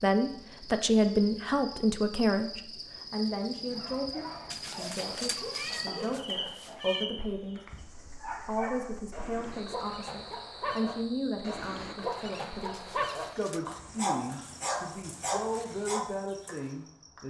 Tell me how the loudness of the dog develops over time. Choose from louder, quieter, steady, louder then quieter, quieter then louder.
louder.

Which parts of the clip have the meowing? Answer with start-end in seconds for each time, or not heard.
4.5-7.0, 12.7-13.7.